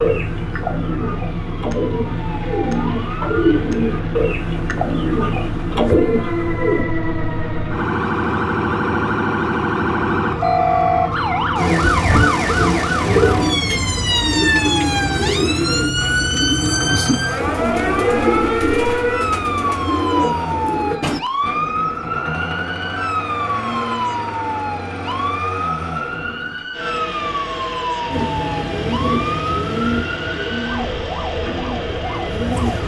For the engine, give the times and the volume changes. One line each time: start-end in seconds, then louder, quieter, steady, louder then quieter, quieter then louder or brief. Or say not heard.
0.0-32.8 steady.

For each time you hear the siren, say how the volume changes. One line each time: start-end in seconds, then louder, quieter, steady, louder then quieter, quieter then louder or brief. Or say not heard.
0.0-32.8 louder then quieter.